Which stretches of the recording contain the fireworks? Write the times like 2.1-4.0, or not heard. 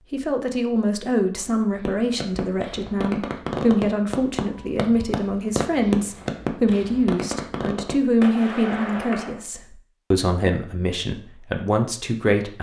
1.7-9.4.